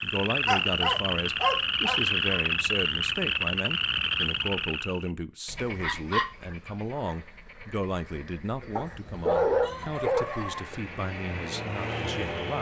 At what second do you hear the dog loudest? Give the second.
9 s.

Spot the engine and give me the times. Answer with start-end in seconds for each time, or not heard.
9.3-12.5.